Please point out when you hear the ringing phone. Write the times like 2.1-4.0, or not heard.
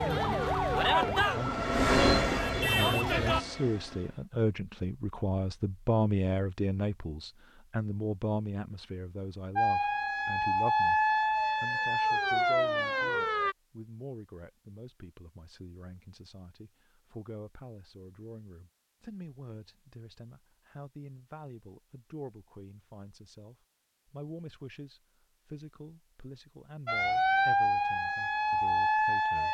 not heard.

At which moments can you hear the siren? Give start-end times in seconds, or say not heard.
0.0-3.5, 9.6-13.6, 26.9-29.4.